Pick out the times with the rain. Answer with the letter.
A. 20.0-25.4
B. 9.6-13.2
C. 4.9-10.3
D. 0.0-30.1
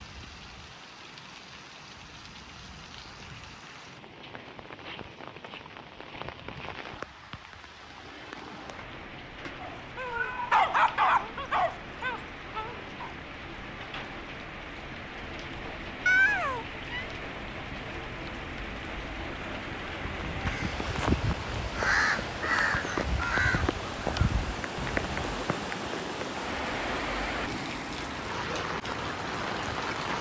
D.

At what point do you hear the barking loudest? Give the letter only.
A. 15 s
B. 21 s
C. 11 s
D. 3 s
C.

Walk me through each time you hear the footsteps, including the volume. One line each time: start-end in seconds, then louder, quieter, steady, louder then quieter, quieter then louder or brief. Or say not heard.
not heard.